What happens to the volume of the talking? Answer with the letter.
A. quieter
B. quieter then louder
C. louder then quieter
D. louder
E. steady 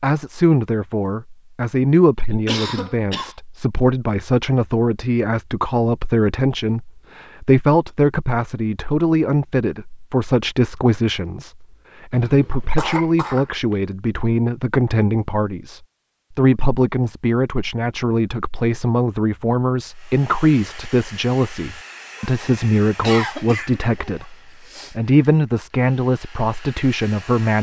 E.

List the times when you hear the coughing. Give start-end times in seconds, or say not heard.
2.3-3.4, 12.2-13.8, 23.0-24.9.